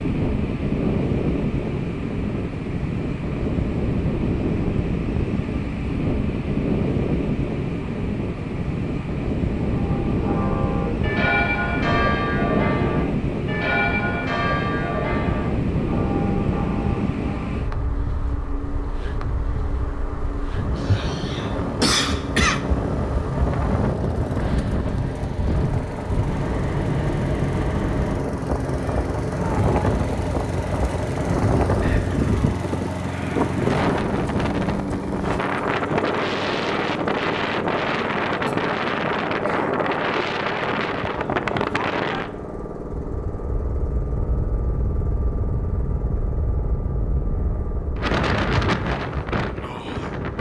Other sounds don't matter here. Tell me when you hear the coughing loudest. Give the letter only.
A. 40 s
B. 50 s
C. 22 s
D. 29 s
C.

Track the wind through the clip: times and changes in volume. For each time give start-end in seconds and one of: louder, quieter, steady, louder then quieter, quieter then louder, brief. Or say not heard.
0.0-50.3 steady.